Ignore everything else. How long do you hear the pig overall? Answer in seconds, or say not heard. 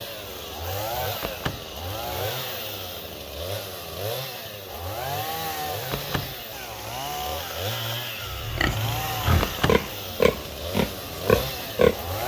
4 s.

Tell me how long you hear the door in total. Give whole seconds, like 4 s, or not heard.
2 s.